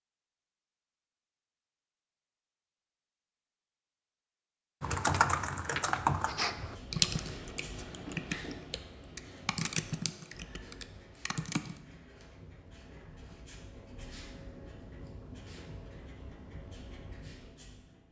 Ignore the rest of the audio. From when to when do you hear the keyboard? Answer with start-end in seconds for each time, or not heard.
4.8-11.8.